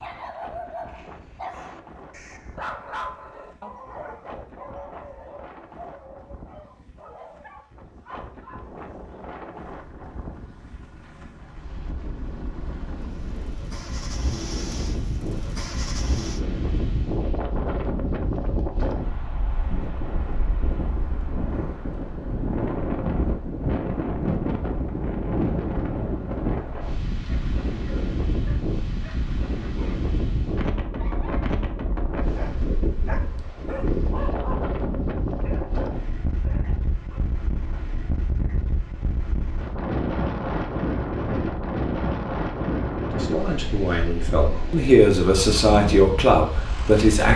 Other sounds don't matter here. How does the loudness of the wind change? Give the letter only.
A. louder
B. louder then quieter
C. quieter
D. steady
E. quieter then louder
A.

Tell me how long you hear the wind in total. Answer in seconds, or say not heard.
47 s.